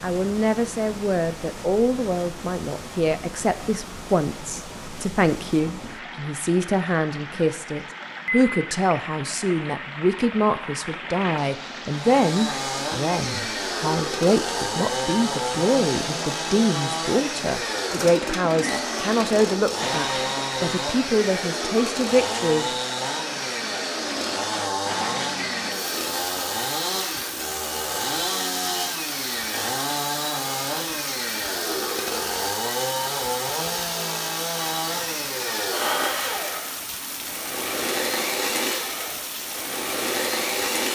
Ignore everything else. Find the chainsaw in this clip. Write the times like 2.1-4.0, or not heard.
11.9-40.9.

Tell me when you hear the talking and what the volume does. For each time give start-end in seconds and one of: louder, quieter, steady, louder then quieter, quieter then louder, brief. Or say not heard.
0.0-22.6 steady.